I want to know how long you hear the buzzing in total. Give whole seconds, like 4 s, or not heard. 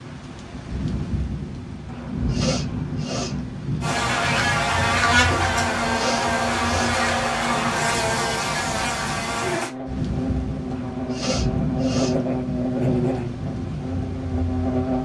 11 s.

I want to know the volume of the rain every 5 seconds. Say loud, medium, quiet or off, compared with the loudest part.
loud, medium, loud.